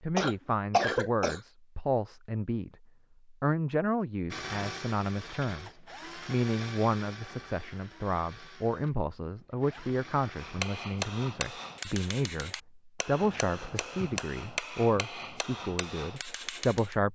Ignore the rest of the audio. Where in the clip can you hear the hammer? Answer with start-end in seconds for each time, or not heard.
10.3-16.9.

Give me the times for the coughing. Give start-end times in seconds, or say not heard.
0.1-1.4.